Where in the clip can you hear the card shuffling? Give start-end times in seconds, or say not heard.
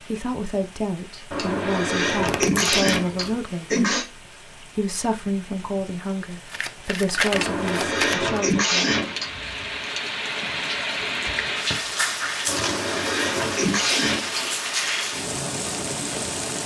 2.1-3.4, 6.5-8.4, 11.7-12.8.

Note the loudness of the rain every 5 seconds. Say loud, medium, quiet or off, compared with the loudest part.
quiet, medium, loud, loud.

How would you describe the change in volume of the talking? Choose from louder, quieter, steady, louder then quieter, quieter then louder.
steady.